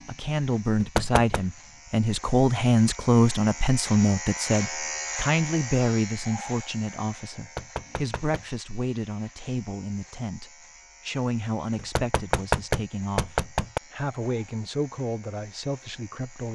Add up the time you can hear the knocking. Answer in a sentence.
You can hear the knocking for 4 seconds altogether.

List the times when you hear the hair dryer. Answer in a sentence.
You can't hear the hair dryer here.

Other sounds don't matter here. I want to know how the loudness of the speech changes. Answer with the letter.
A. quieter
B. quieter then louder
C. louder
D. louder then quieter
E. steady
A.